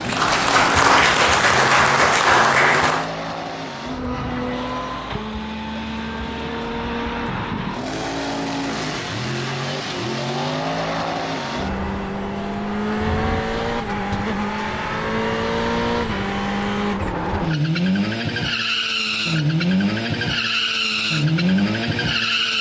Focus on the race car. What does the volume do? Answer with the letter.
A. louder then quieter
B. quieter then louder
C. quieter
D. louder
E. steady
D.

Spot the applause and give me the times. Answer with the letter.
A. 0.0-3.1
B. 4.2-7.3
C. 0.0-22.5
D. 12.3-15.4
A.